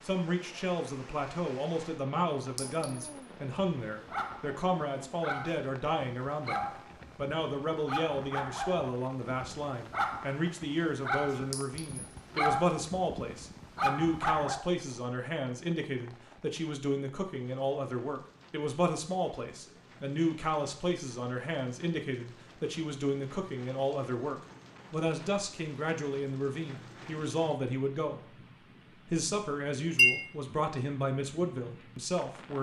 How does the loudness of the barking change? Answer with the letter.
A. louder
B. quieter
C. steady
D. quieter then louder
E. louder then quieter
A.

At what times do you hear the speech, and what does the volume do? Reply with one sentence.
You can hear the speech from 0.0 to 32.5 s, at a steady volume.